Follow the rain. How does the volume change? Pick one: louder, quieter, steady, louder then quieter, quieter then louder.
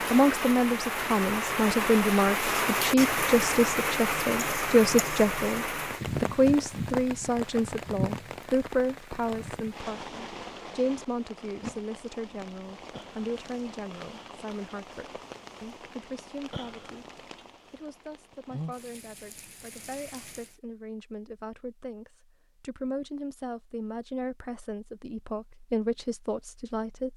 quieter.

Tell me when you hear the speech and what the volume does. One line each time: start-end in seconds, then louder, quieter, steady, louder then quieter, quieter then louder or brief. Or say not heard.
0.1-27.1 quieter then louder.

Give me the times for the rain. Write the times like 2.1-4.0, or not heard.
0.0-20.6.